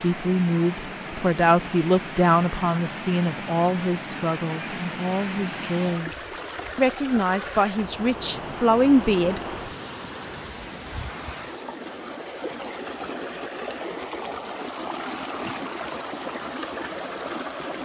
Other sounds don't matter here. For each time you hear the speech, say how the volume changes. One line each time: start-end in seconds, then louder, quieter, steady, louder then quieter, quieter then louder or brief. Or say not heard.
0.0-9.4 quieter then louder.